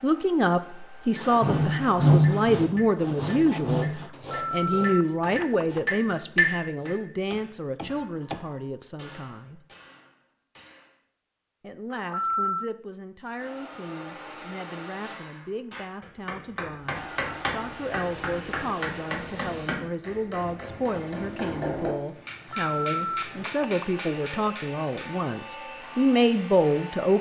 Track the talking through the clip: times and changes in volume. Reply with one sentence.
The talking can be heard from 0.0 to 9.6 s, getting quieter; and from 11.6 to 27.1 s, getting louder.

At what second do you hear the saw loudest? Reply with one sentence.
The loudest moment of the saw is at 2 seconds.